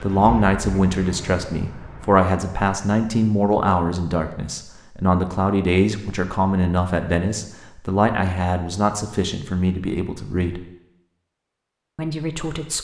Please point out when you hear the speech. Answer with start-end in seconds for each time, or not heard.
0.0-10.6, 11.9-12.7.